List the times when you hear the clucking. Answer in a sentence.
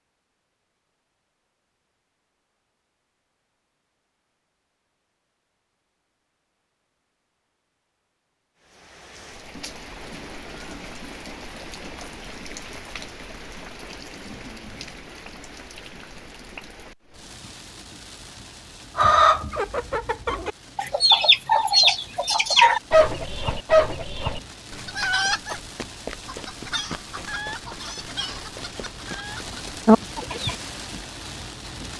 You can hear the clucking from 18.9 to 30.6 s.